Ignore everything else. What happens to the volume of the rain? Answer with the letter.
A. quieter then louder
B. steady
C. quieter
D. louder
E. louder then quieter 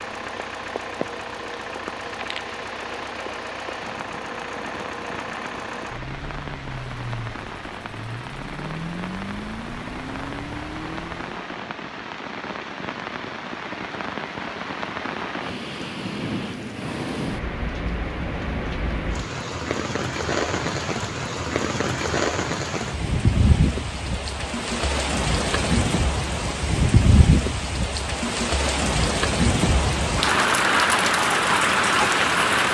D.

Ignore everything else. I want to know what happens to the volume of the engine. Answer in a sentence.
The loudness of the engine stays about the same.